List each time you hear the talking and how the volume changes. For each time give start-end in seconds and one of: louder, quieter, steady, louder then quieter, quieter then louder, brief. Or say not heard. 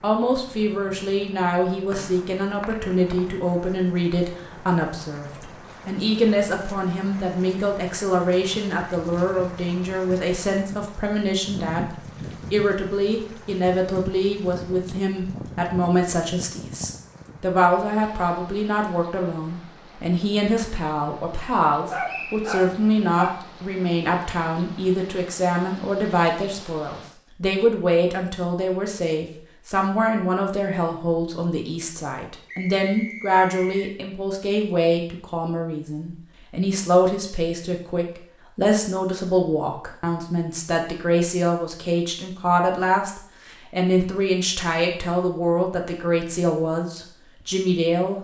0.0-48.1 steady.